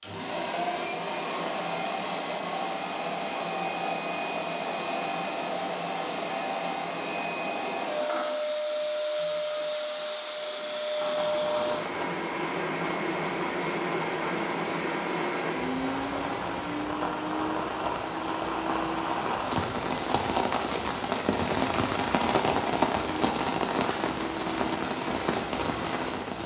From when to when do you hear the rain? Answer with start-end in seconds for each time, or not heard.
11.2-26.4.